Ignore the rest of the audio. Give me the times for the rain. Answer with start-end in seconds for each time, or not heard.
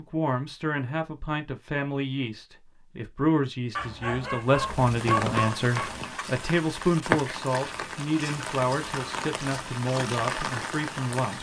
4.5-11.3.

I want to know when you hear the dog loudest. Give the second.
5 s.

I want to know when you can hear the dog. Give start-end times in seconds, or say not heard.
3.8-6.2.